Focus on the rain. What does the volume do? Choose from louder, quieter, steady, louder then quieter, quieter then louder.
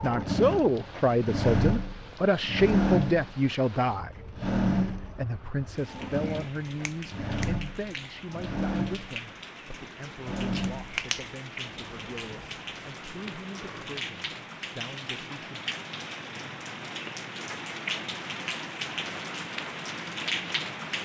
louder.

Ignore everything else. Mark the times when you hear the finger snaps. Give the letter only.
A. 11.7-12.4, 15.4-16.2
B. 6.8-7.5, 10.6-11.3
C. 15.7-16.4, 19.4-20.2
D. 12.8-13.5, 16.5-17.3
B.